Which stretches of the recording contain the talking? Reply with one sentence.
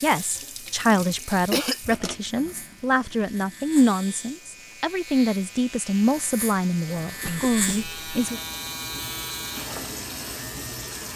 You can hear the talking from 0.0 to 8.4 s.